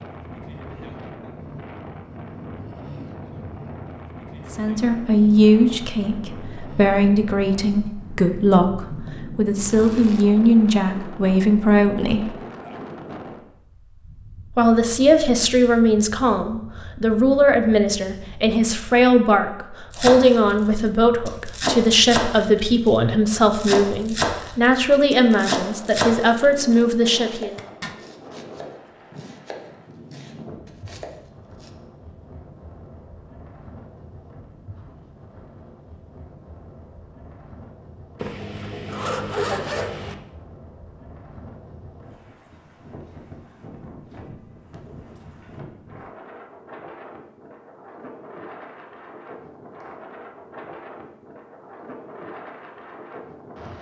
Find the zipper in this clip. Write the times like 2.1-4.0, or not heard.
9.6-10.2, 27.4-27.9, 38.1-40.1.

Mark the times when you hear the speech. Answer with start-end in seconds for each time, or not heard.
4.5-12.3, 14.6-27.6.